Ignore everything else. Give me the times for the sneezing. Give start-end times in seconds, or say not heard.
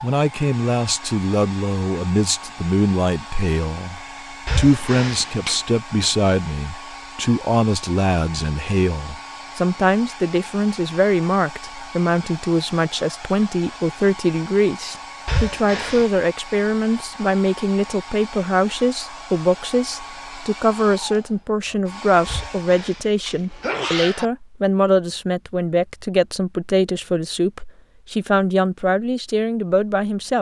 4.5-5.6, 15.2-16.1, 22.2-24.3.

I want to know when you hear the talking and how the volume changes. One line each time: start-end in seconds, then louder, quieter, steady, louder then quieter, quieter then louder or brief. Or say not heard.
0.0-30.3 steady.